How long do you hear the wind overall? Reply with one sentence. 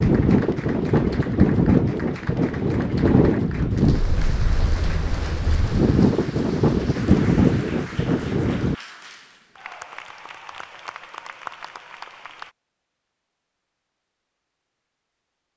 The wind can be heard for 9 seconds in total.